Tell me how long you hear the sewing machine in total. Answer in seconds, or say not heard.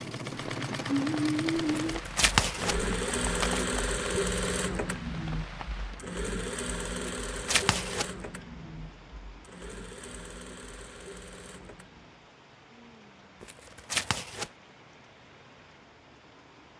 12 s.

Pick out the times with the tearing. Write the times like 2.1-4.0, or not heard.
1.6-3.6, 7.2-8.1, 13.4-14.5.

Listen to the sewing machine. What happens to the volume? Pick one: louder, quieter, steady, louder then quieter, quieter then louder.
quieter.